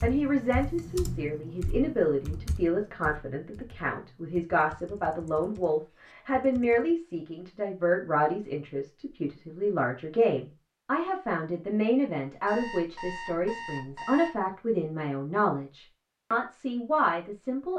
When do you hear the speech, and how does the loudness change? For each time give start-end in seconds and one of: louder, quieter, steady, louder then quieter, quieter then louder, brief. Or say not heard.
0.0-17.7 steady.